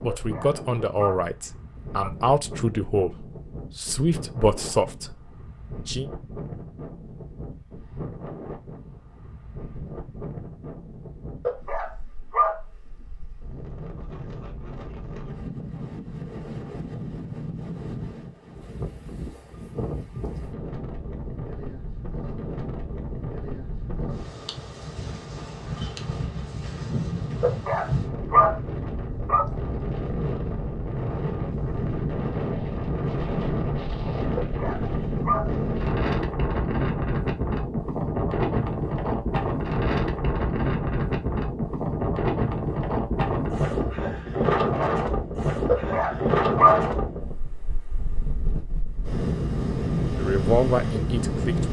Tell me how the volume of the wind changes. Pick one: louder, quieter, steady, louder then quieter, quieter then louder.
louder.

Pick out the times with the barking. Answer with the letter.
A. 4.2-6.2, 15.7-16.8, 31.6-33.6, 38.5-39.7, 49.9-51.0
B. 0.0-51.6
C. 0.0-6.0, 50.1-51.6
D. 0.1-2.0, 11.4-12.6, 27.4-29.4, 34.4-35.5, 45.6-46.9
D.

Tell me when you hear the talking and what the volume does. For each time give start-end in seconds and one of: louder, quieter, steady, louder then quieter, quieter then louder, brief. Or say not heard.
0.0-6.0 steady
50.1-51.6 brief.